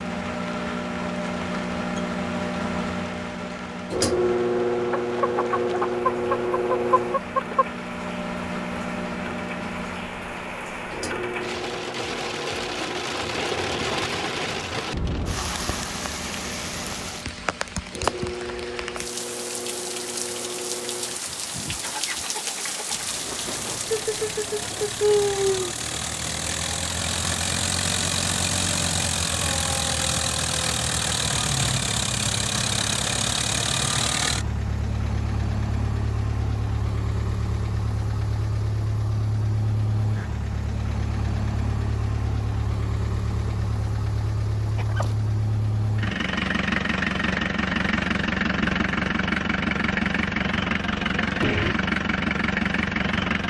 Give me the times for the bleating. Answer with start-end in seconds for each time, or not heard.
not heard.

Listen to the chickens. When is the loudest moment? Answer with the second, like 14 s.
25 s.